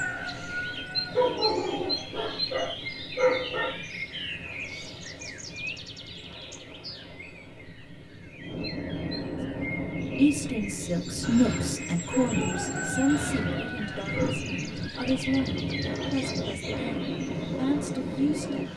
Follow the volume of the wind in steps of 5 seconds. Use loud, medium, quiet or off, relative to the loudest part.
quiet, medium, loud, loud.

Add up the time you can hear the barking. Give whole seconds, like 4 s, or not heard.
5 s.